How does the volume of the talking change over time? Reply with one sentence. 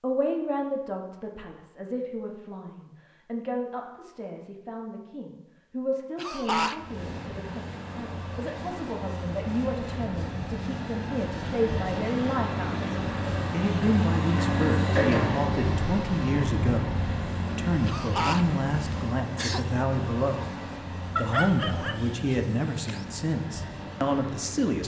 The loudness of the talking goes up.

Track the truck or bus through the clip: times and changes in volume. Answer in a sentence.
The truck or bus can be heard from 6.7 to 24.8 s, getting louder then quieter.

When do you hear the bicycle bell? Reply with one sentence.
You can't hear the bicycle bell here.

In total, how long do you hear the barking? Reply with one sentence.
The barking can be heard for 2 seconds in total.